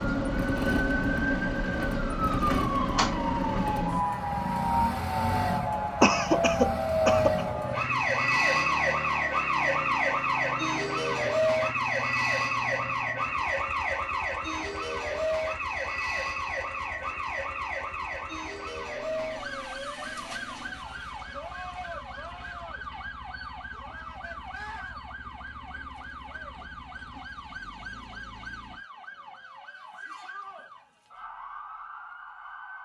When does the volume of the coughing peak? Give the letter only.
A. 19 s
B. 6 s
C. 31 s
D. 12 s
B.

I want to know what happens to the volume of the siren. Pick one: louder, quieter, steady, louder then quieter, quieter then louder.
quieter.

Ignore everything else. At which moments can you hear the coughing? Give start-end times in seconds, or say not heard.
6.0-7.5.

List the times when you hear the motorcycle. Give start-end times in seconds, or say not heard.
0.0-28.9.